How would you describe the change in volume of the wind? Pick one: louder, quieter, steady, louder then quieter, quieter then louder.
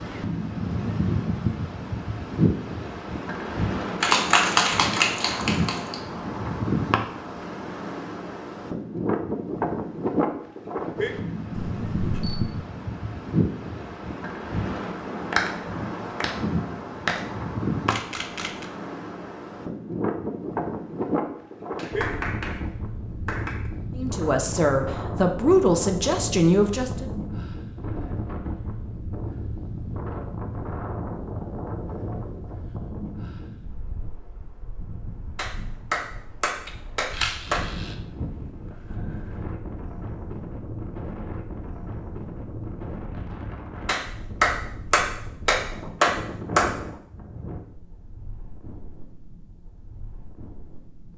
quieter.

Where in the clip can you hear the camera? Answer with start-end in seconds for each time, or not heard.
11.5-12.4, 17.9-18.6, 36.6-37.9.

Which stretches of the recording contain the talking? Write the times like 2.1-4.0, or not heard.
23.9-27.1.